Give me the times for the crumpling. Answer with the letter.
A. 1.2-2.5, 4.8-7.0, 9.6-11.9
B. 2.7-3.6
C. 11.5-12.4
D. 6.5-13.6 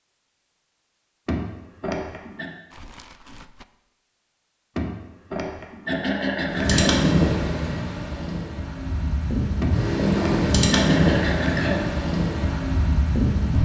B.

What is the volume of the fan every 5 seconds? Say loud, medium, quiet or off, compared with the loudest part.
off, loud, loud.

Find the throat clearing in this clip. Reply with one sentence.
The throat clearing can be heard from 1.2 to 2.5 s, from 4.8 to 7.0 s and from 9.6 to 11.9 s.